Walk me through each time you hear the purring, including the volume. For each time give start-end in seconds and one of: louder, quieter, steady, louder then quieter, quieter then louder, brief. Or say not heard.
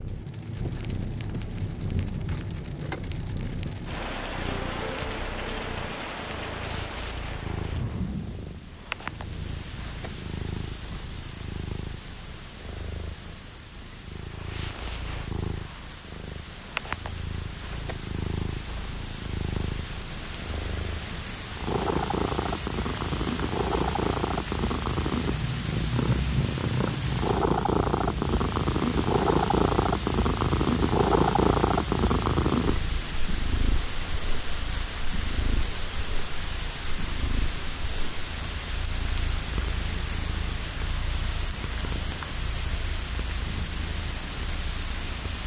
0.0-45.4 louder then quieter.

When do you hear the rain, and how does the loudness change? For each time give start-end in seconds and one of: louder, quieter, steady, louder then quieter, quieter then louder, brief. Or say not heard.
0.0-45.4 quieter then louder.